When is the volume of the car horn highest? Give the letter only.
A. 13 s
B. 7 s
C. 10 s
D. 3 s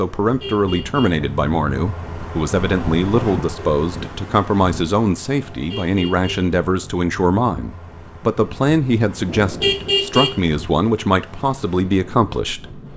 C.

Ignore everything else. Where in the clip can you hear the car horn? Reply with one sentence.
You can hear the car horn from 0.2 to 1.1 s, from 5.5 to 6.5 s and from 9.2 to 10.4 s.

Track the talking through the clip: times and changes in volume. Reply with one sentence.
The talking can be heard from 0.0 to 12.8 s, at a steady volume.